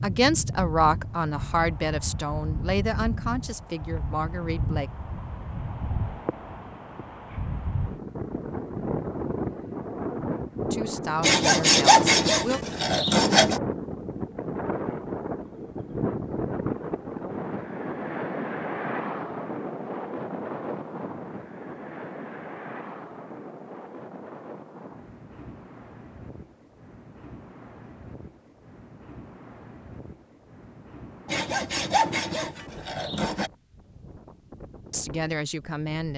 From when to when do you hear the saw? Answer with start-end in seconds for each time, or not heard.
11.2-13.6, 31.2-33.5.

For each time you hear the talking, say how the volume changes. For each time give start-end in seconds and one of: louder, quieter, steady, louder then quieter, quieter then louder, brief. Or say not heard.
0.0-4.9 quieter
10.7-12.6 brief
34.9-36.1 brief.